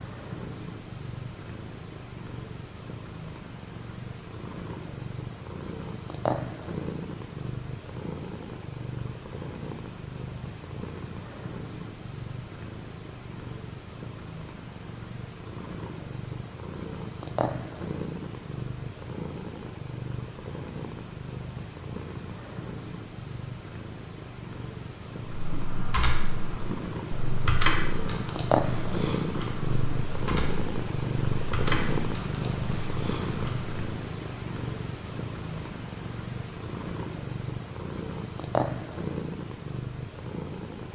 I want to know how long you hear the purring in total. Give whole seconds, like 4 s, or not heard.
41 s.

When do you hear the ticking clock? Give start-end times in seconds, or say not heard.
not heard.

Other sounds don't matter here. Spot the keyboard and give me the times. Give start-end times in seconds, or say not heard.
25.2-33.7.